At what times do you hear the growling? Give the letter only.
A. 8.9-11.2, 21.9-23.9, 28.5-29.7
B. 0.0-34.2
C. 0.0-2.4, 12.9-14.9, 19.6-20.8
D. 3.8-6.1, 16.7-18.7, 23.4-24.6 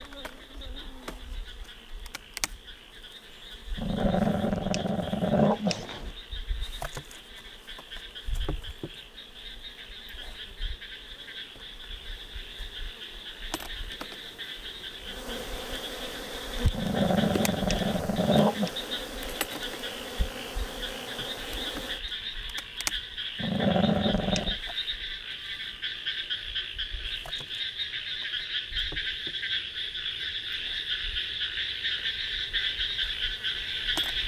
D.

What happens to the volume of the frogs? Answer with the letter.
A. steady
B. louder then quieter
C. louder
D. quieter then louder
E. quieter
C.